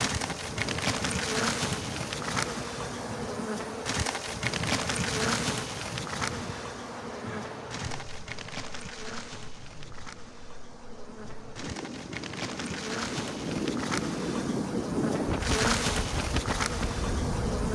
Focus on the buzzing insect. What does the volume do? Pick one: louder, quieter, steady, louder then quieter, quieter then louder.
quieter then louder.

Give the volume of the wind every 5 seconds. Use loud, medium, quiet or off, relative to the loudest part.
medium, medium, loud, loud.